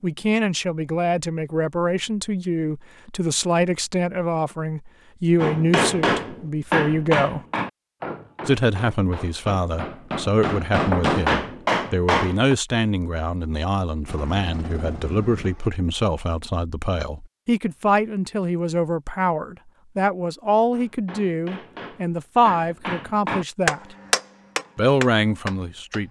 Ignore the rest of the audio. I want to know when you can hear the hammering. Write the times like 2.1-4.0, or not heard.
5.4-12.6, 20.7-26.0.